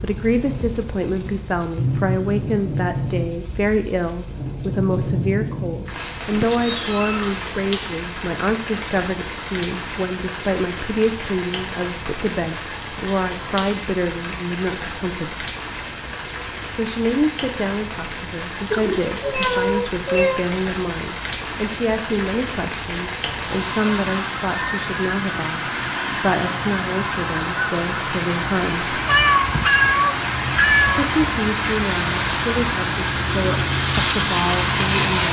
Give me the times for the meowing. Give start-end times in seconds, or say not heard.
6.2-7.5, 18.7-20.4, 29.1-31.1.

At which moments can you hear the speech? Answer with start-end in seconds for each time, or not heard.
0.0-15.4, 16.7-28.9, 30.9-35.2.